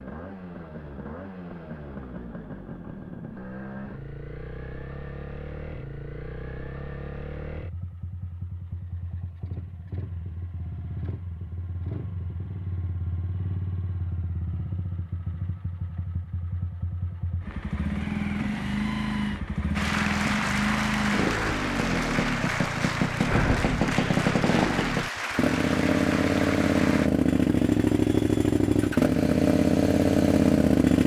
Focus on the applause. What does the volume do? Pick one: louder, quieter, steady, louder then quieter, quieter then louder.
steady.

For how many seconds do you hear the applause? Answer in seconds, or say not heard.
7 s.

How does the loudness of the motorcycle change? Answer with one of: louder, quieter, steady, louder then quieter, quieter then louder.
louder.